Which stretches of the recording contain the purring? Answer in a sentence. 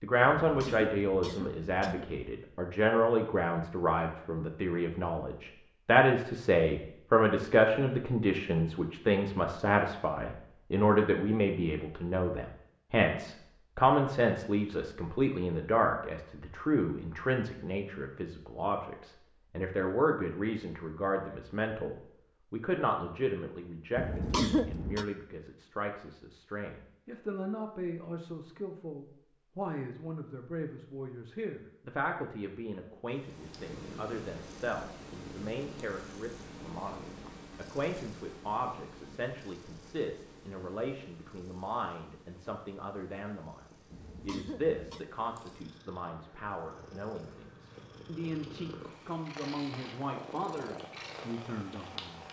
You can hear the purring from 33.1 to 52.2 s.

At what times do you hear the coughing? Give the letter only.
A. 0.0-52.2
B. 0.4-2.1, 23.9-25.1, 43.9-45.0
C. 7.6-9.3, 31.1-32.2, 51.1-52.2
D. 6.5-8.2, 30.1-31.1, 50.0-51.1
B.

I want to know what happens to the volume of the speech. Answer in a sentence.
The loudness of the speech goes down.